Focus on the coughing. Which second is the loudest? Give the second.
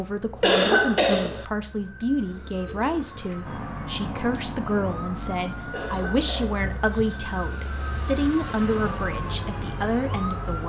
1 s.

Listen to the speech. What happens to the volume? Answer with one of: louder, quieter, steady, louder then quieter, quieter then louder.
steady.